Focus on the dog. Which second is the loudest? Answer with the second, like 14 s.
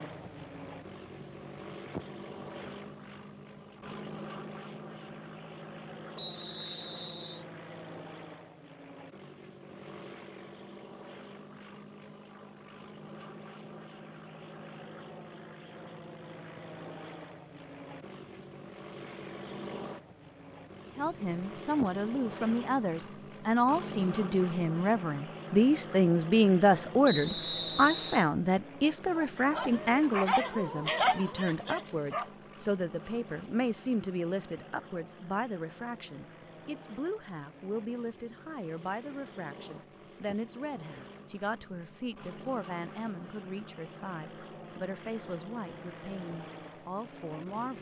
31 s.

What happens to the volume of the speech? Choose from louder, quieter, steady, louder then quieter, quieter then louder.
quieter.